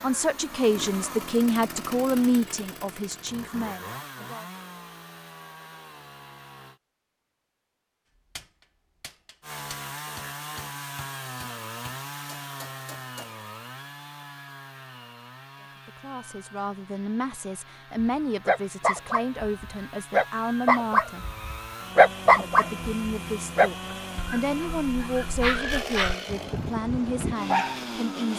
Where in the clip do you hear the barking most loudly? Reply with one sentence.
The loudest moment of the barking is at 22 seconds.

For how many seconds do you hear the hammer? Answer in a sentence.
The hammer can be heard for 5 seconds in total.